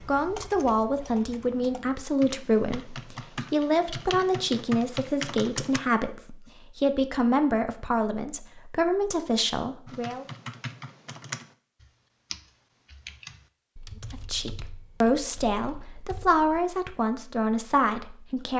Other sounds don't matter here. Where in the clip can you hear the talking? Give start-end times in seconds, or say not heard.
0.0-10.2, 14.0-18.5.